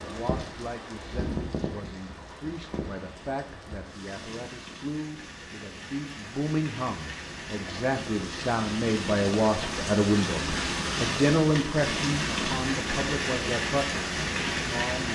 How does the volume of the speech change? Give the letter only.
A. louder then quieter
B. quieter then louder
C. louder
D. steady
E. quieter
A.